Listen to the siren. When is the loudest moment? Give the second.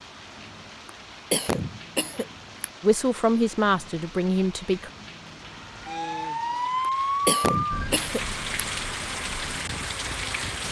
7 s.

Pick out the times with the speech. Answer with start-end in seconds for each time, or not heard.
2.8-4.9.